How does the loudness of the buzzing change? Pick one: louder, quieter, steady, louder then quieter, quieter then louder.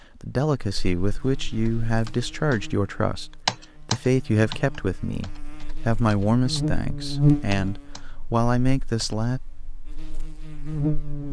louder then quieter.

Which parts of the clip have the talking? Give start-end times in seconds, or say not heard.
0.2-9.4.